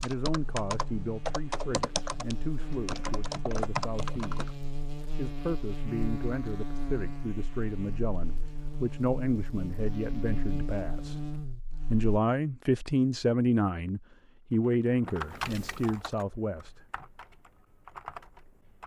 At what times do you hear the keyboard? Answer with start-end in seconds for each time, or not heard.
0.0-4.5, 14.6-18.8.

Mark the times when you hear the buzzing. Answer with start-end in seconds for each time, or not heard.
0.2-12.2.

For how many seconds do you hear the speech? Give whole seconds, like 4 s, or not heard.
16 s.